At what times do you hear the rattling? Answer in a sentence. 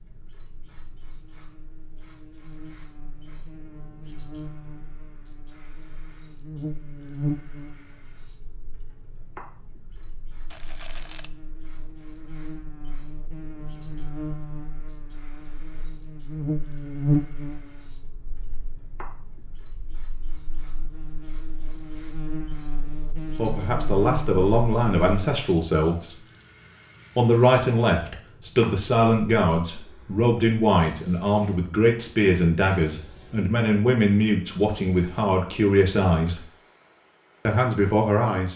The rattling can be heard from 10.5 to 11.3 s.